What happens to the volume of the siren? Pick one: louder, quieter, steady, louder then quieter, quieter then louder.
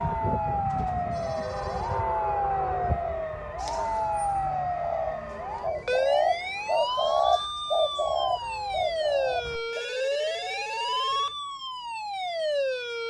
steady.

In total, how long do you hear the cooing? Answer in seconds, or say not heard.
6 s.